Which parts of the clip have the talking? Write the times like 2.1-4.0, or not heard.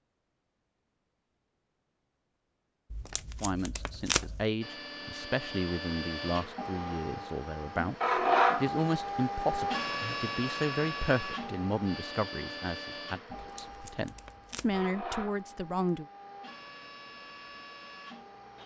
3.4-16.1.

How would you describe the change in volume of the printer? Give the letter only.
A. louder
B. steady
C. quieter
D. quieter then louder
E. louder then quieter
E.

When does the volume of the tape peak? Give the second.
4 s.